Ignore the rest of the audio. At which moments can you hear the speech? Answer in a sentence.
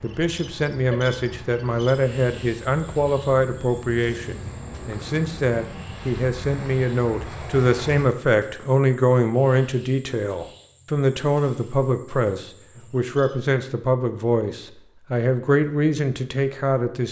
You can hear the speech from 0.0 to 17.0 s.